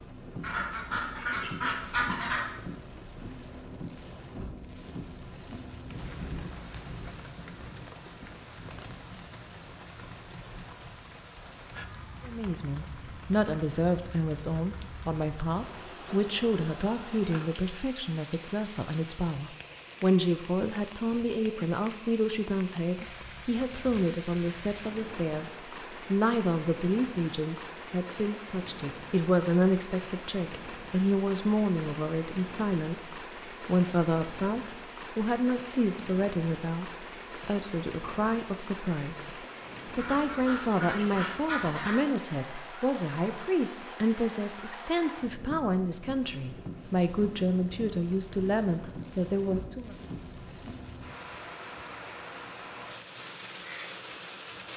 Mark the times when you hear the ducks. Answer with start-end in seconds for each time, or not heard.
0.4-2.4, 40.0-42.0.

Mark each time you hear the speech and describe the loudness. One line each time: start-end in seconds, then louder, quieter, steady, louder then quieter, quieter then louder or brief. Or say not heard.
12.2-50.0 steady.